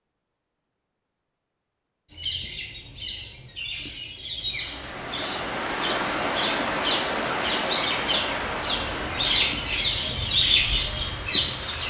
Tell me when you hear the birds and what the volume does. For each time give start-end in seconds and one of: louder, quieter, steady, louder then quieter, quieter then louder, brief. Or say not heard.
2.1-11.8 louder.